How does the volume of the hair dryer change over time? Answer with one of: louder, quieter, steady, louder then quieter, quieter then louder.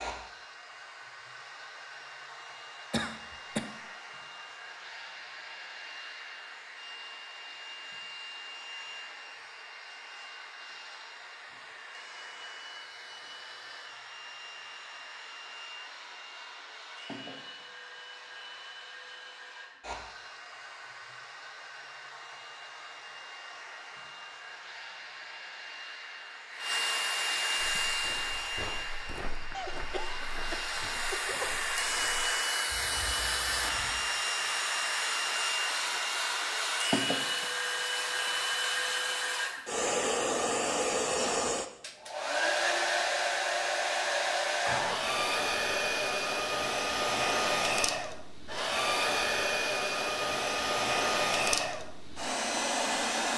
louder.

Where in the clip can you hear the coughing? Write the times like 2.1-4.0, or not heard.
2.9-3.8, 29.5-31.5, 44.6-45.1.